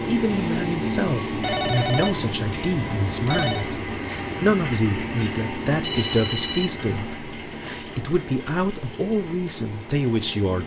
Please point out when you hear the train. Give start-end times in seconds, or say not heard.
0.0-10.6.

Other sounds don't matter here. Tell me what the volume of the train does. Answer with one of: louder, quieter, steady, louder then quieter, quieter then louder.
quieter.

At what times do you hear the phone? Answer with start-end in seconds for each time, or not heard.
1.4-3.6, 5.8-7.8.